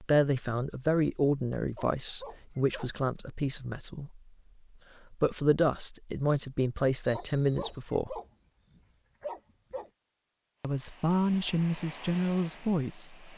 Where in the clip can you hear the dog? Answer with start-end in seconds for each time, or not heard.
1.8-3.0, 7.1-9.9.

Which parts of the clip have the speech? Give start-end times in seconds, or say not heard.
0.0-4.2, 5.1-8.2, 10.6-13.3.